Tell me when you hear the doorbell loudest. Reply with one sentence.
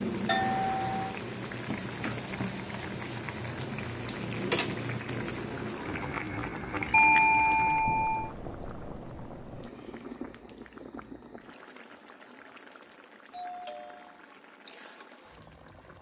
The loudest moment of the doorbell is at 7 seconds.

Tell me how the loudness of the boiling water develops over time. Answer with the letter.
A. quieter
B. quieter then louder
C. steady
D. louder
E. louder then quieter
A.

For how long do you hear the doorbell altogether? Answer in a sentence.
You can hear the doorbell for 3 seconds altogether.